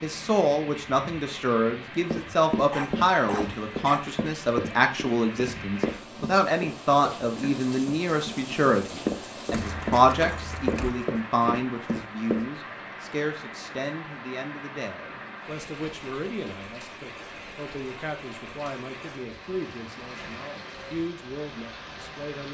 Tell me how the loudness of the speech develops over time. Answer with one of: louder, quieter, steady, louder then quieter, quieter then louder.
quieter.